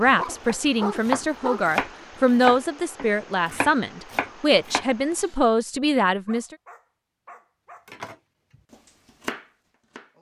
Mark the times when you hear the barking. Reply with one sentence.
You can hear the barking from 0.1 to 1.6 s and from 6.2 to 7.9 s.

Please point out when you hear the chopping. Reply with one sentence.
You can hear the chopping from 0.4 to 4.8 s and from 7.8 to 10.1 s.